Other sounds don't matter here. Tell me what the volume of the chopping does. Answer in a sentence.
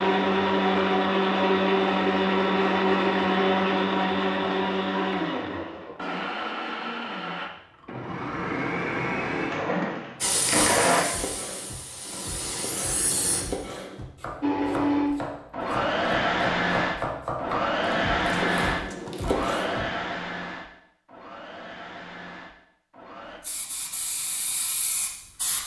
The volume of the chopping goes up.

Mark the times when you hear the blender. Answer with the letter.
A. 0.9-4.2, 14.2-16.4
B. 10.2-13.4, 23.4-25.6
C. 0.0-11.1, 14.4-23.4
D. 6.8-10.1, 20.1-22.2
C.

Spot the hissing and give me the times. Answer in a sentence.
The hissing can be heard from 10.2 to 13.4 s and from 23.4 to 25.6 s.